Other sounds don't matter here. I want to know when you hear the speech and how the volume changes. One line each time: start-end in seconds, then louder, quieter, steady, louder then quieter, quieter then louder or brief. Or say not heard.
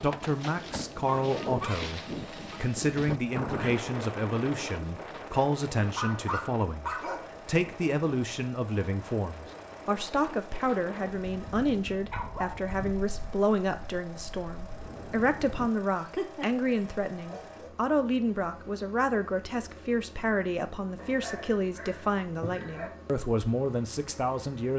0.0-24.7 steady.